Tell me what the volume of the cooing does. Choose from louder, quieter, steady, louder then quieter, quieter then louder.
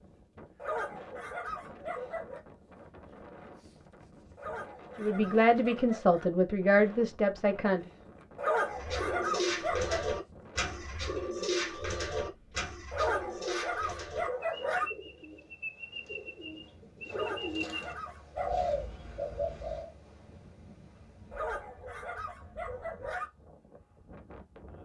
quieter then louder.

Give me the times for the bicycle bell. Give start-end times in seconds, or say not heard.
not heard.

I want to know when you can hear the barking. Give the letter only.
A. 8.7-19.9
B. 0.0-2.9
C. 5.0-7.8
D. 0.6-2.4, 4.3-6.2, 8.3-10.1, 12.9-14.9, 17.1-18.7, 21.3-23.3
D.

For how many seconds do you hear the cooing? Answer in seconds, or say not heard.
11 s.